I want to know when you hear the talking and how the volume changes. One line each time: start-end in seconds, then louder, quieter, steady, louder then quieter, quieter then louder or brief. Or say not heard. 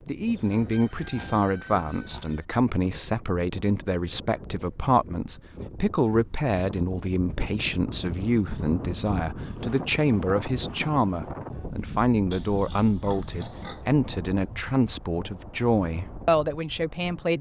0.1-17.3 steady.